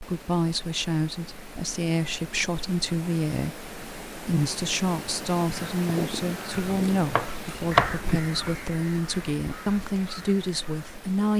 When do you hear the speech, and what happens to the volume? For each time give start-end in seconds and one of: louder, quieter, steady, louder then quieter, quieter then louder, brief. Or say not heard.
0.0-11.3 steady.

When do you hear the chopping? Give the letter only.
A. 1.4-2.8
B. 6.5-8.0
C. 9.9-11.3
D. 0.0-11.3
B.